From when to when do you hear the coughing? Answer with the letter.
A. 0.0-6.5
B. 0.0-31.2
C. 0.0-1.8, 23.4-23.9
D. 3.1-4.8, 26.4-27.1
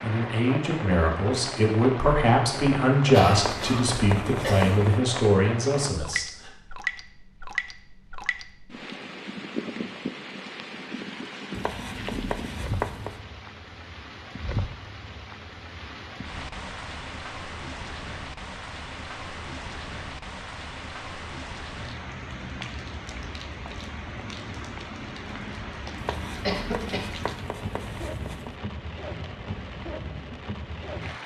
D.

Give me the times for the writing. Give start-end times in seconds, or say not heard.
3.4-5.0, 11.5-13.2, 25.9-28.6.